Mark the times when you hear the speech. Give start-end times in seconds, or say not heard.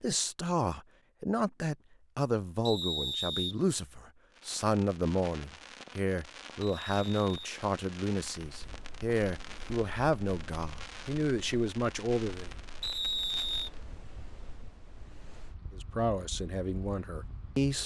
0.0-12.5, 15.7-17.8.